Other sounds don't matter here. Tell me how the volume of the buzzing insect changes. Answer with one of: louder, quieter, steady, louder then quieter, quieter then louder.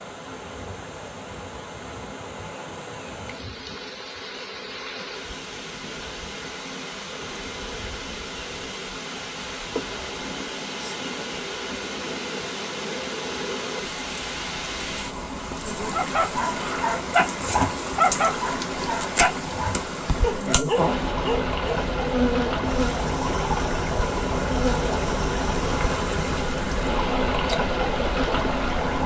louder.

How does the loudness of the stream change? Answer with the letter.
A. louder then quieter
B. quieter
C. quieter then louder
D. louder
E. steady
D.